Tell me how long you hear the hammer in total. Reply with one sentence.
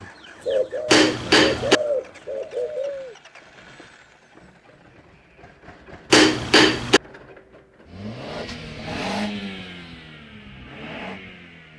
You can hear the hammer for 2 seconds altogether.